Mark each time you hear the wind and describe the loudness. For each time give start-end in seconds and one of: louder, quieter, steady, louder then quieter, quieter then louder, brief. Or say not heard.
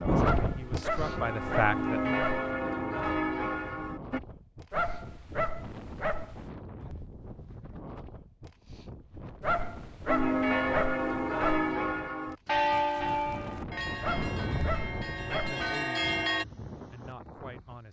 0.0-17.8 quieter then louder.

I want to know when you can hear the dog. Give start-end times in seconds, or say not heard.
0.2-2.5, 4.7-6.5, 9.4-11.8, 14.0-15.6.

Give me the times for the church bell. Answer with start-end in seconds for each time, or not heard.
0.0-4.2, 10.1-16.4.